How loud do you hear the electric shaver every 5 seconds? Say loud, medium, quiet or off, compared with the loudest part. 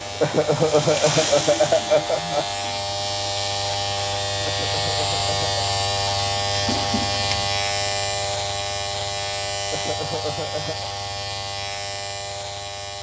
loud, loud, medium.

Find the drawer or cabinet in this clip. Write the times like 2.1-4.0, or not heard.
6.5-7.5.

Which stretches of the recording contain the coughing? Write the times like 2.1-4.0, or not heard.
0.2-2.5, 4.5-5.7, 9.7-10.9.